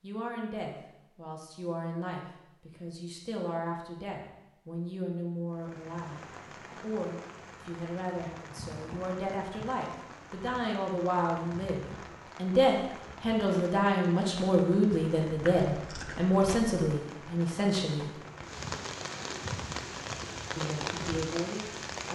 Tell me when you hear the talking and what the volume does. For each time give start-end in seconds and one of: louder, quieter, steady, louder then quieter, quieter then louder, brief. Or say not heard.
0.0-18.1 louder
20.6-22.1 brief.